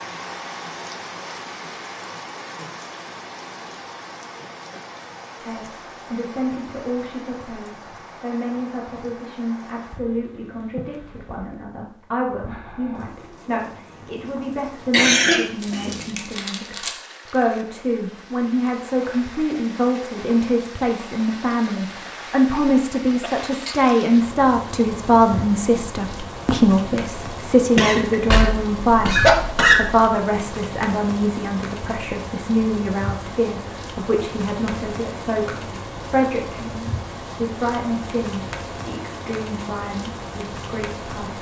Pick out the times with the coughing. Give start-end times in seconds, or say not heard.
14.9-16.9, 27.8-30.1.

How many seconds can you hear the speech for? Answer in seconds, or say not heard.
36 s.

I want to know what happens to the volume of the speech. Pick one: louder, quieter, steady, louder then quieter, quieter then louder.
louder then quieter.